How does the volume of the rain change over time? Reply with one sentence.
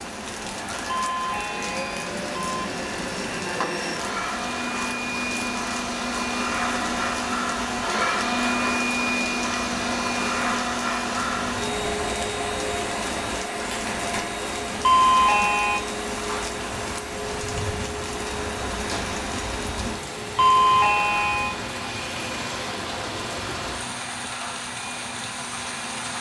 The volume of the rain stays about the same.